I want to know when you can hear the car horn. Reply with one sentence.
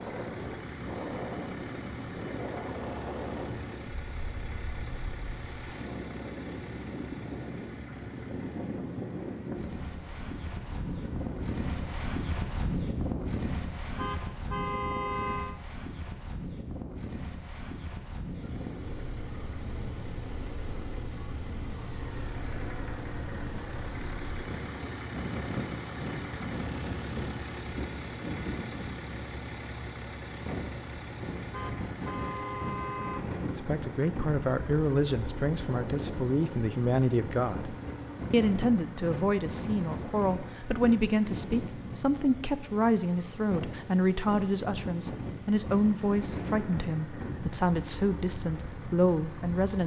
The car horn can be heard from 13.9 to 15.6 s and from 31.5 to 33.2 s.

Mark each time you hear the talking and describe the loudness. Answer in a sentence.
The talking can be heard from 33.5 to 49.8 s, at a steady volume.